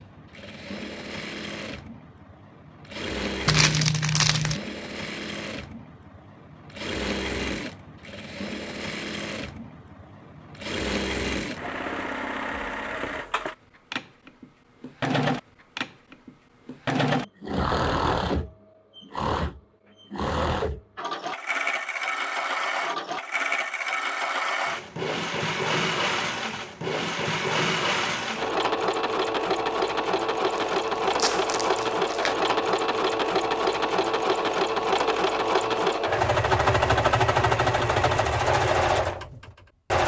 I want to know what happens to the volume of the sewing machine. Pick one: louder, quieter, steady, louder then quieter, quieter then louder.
louder.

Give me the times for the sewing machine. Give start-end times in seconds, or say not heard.
0.0-40.0.